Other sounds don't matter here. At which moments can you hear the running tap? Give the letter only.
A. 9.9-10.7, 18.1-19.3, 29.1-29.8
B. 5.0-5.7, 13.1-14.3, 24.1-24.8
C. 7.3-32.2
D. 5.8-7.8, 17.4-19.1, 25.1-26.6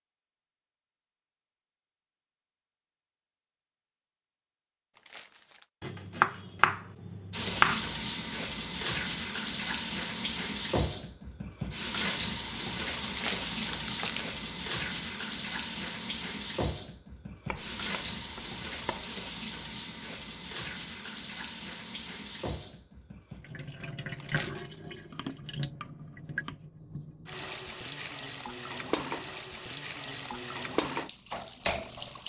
C.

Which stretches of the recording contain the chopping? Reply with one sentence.
The chopping can be heard from 5.8 to 7.8 s, from 17.4 to 19.1 s and from 25.1 to 26.6 s.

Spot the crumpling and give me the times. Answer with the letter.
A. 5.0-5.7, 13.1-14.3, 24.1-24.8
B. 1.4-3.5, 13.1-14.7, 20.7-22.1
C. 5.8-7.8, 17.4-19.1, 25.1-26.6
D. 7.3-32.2
A.